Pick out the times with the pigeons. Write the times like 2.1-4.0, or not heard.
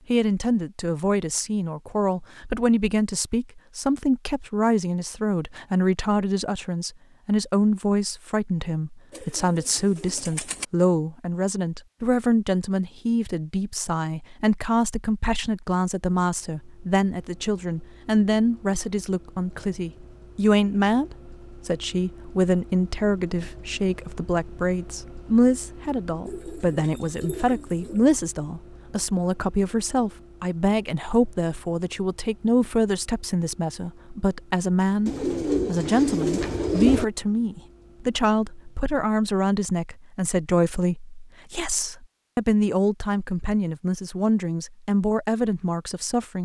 9.1-10.7, 26.2-28.1, 35.0-37.0.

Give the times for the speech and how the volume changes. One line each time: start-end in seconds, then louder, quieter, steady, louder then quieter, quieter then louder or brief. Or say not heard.
0.1-46.3 steady.